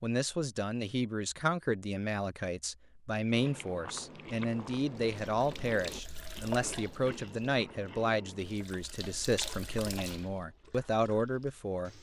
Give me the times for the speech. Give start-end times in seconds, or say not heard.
0.0-11.9.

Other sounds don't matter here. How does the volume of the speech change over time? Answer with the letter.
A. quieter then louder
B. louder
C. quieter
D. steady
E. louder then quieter
D.